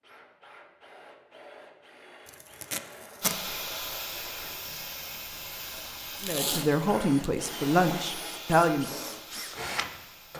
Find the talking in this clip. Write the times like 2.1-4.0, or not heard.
6.2-8.9.